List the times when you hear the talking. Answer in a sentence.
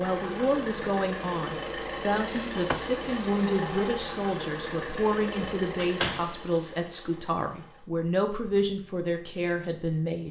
The talking can be heard from 0.0 to 10.2 s.